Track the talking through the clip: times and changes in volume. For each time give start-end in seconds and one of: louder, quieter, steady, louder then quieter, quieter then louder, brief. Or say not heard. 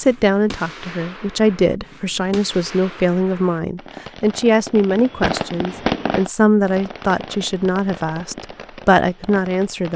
0.0-9.9 steady.